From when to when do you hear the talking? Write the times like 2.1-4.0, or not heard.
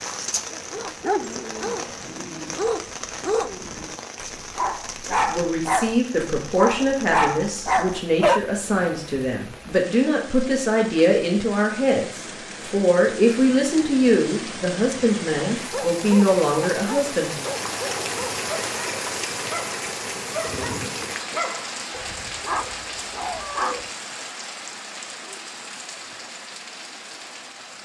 5.1-17.4.